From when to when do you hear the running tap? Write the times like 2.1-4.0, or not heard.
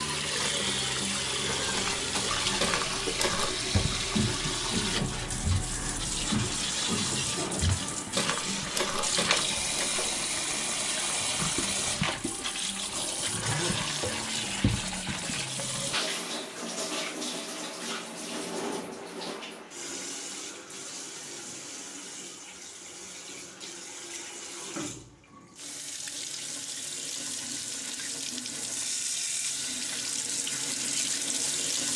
0.0-31.9.